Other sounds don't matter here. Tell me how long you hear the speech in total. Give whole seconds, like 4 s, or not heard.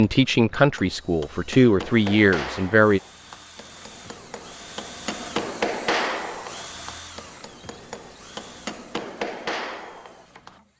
3 s.